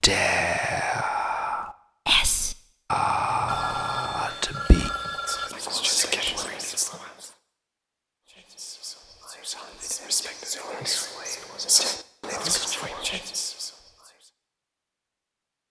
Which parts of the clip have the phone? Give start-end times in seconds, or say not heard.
3.5-5.5.